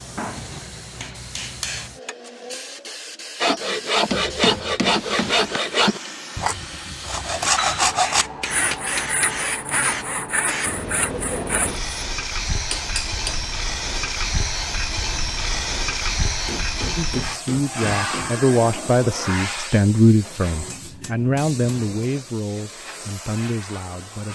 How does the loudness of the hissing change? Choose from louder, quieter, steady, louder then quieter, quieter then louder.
louder then quieter.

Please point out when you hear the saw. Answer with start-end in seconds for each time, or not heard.
3.4-11.9.